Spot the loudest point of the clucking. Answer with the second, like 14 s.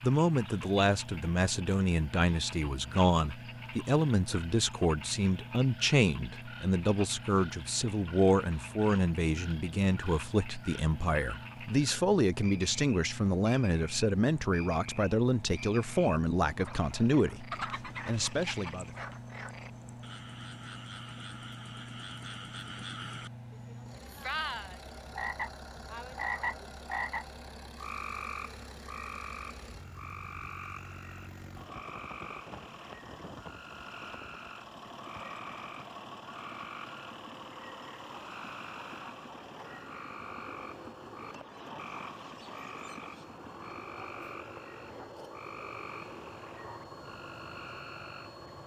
18 s.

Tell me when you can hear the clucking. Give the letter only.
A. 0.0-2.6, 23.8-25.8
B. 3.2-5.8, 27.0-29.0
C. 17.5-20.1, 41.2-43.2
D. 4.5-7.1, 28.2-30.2
C.